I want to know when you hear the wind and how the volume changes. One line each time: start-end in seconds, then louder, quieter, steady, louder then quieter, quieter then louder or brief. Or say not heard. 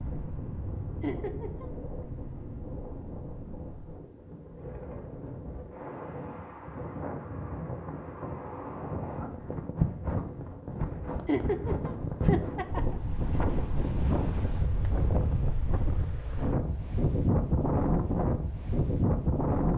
0.0-19.7 louder.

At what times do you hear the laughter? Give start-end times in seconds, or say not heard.
1.0-1.6, 11.2-12.9.